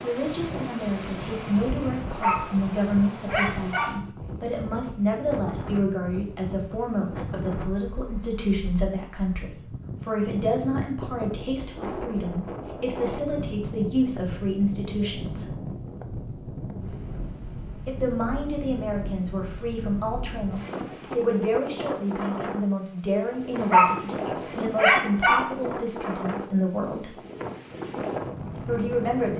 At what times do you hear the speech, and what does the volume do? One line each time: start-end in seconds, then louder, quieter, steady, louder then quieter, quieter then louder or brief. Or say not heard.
0.0-15.4 steady
17.9-27.1 steady
28.6-29.3 brief.